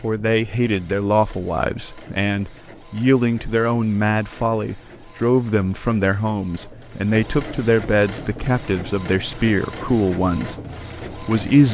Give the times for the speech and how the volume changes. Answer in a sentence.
The speech can be heard from 0.0 to 11.6 s, at a steady volume.